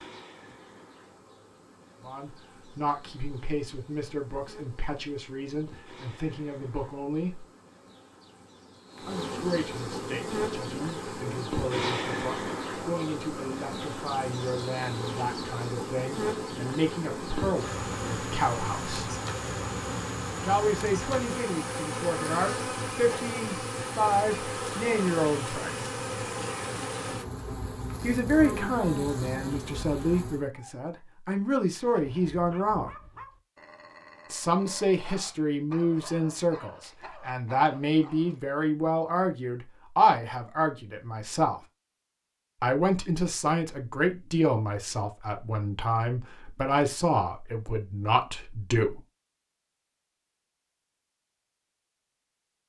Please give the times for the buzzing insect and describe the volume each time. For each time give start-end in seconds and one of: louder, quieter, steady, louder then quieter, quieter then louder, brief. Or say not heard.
0.0-30.5 louder.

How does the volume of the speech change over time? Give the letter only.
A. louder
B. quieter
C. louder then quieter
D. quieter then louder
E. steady
A.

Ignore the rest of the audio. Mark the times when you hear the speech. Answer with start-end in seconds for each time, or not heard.
2.0-7.5, 9.1-19.1, 20.4-25.9, 28.0-32.9, 34.3-41.6, 42.6-49.0.